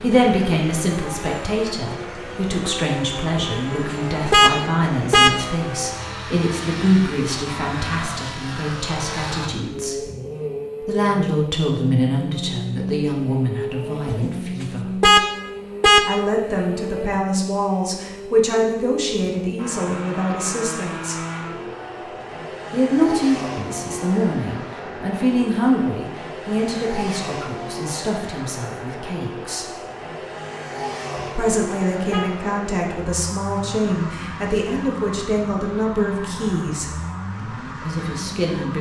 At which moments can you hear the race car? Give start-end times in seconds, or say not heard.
0.0-38.7.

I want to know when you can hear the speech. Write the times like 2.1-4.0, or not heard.
0.0-10.1, 10.8-15.0, 16.1-21.1, 22.7-29.6, 31.4-38.7.